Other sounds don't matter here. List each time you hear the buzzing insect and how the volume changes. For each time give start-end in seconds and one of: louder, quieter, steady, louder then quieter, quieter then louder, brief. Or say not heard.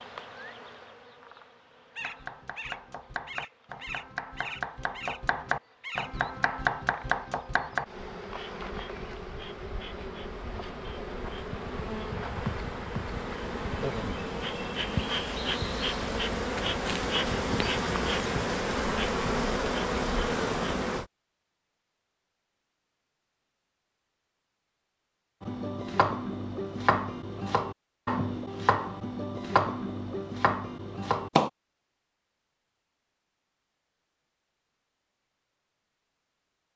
0.0-21.1 louder.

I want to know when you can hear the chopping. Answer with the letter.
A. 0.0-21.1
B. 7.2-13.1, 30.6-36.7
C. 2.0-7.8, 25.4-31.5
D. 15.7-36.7
C.